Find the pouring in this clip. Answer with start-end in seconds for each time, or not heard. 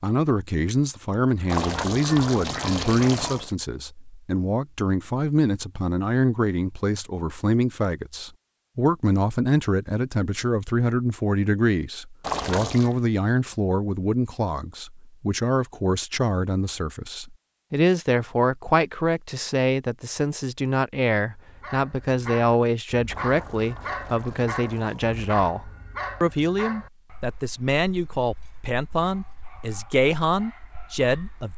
1.4-3.5, 12.2-12.9, 23.1-25.4.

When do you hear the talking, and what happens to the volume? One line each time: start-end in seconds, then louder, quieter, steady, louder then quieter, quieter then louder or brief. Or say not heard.
0.0-31.5 steady.